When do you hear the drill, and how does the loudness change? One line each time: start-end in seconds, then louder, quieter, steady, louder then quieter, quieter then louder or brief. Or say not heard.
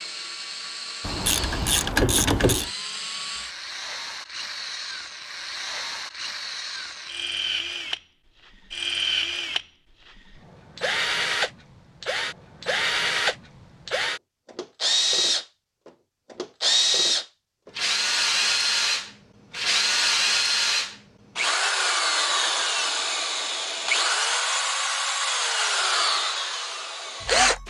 0.0-27.6 louder.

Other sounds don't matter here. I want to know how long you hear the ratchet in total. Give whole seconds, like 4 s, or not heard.
2 s.